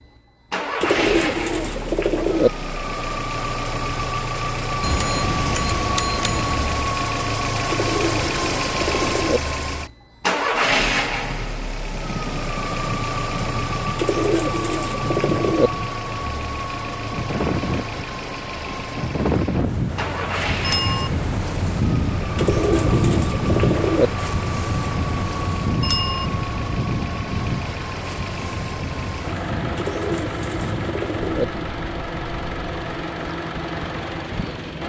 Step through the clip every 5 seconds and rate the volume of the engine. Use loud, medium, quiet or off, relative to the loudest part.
loud, loud, loud, medium, medium, medium, medium.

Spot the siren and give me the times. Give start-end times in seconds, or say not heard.
not heard.